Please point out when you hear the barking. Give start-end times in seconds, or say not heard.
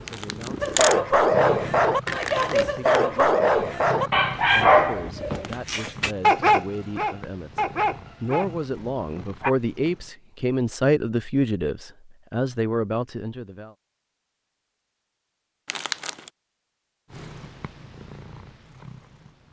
0.6-9.5.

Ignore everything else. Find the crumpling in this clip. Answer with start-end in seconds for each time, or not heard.
0.1-0.9, 15.7-16.3.